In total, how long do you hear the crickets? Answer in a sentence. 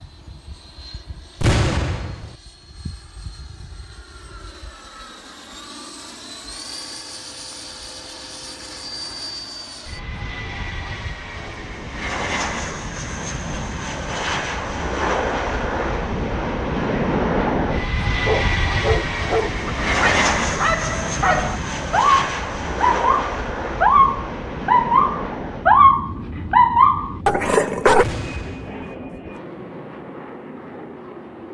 The crickets can't be heard in this clip.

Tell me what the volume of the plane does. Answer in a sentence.
The volume of the plane goes up, then down.